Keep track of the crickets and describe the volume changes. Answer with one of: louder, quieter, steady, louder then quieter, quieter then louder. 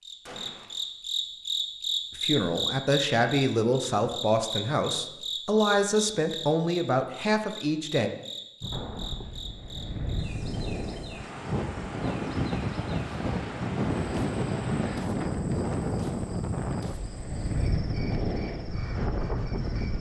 quieter.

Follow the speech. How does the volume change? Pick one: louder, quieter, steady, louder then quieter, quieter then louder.
steady.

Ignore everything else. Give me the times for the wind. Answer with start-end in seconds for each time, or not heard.
8.6-19.9.